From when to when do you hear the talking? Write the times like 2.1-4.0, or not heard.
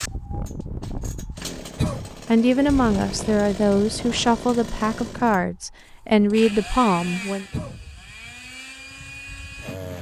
2.2-7.5.